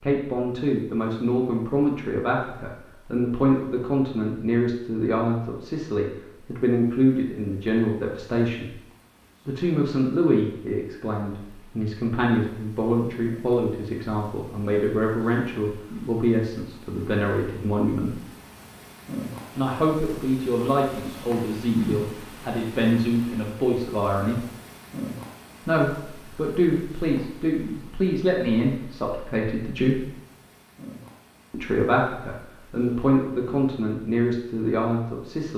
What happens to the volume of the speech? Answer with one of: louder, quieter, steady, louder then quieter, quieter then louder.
steady.